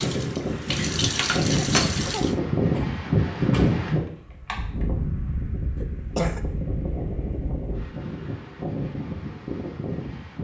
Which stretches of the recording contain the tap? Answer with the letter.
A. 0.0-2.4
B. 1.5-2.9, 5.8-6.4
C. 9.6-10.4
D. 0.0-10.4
A.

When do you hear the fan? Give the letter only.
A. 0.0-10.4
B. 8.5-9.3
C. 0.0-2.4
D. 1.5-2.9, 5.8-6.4
A.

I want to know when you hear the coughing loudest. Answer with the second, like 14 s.
6 s.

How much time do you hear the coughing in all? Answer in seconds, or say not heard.
2 s.